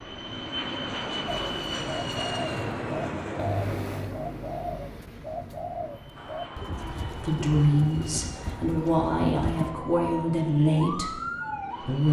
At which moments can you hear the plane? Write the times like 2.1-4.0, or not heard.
0.0-12.0.